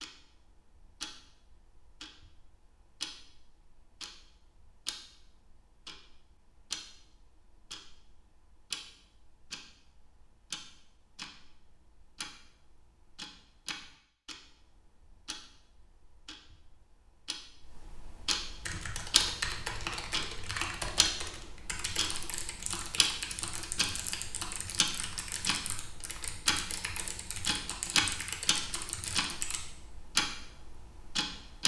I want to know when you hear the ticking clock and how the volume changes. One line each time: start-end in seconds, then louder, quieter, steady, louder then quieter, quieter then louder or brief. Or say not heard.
0.0-31.6 louder.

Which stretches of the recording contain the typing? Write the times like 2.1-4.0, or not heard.
18.6-29.6.